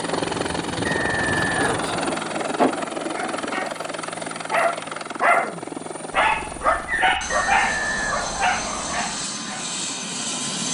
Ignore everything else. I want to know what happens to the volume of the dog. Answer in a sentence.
The volume of the dog goes up, then down.